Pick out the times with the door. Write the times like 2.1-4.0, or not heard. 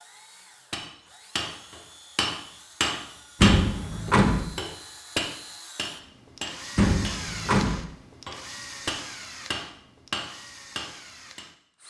3.4-4.5, 6.8-7.8.